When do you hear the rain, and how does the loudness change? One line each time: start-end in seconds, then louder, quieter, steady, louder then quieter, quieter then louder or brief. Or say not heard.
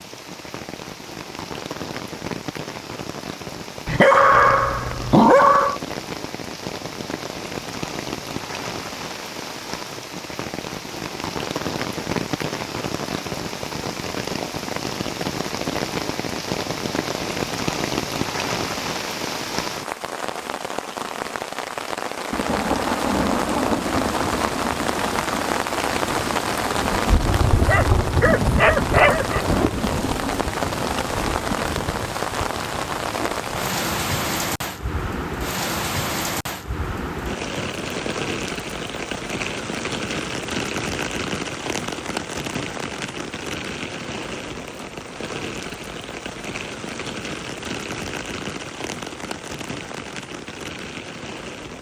0.0-51.7 louder then quieter.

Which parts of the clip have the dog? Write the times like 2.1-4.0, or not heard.
3.9-5.8, 27.6-29.4.